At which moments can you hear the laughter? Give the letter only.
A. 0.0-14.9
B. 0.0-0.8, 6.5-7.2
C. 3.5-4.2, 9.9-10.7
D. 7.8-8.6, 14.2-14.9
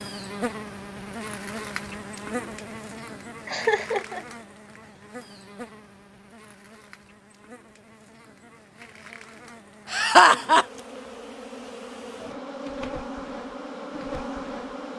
C.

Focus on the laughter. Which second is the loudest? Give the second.
10 s.